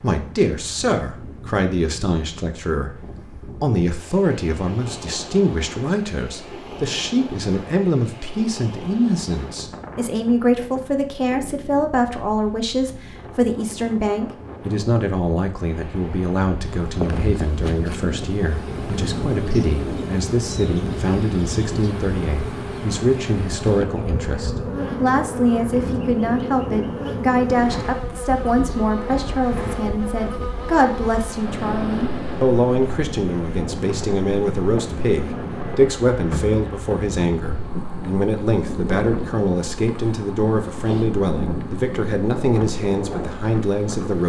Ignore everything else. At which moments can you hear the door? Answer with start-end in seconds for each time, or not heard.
not heard.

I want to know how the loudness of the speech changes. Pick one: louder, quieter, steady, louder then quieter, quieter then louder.
steady.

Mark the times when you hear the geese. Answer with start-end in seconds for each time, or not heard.
not heard.